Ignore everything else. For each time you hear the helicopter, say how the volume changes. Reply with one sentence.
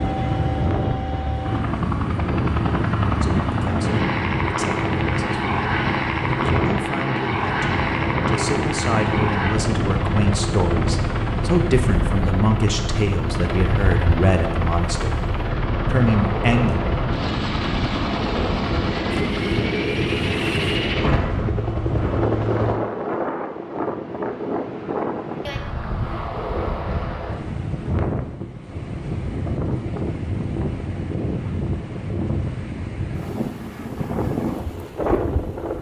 You can hear the helicopter from 0.0 to 22.8 s, at a steady volume.